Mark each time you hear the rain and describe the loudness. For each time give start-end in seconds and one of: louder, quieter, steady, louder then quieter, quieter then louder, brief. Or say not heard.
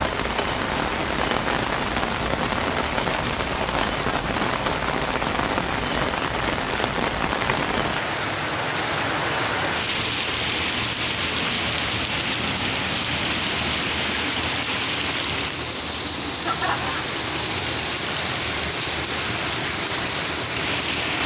0.0-21.2 steady.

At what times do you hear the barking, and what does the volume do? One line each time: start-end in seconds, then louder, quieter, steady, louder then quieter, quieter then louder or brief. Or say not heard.
not heard.